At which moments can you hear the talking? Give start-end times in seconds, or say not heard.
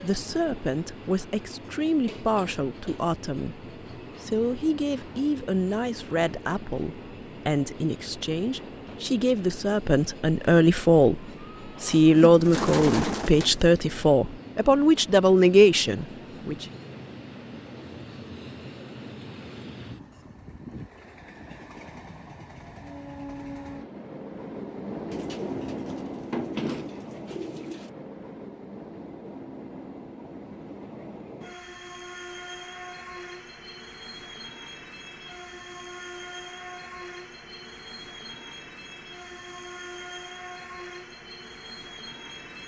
0.0-11.2, 11.8-16.6.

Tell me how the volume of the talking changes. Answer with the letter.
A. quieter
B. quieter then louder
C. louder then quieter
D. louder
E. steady
D.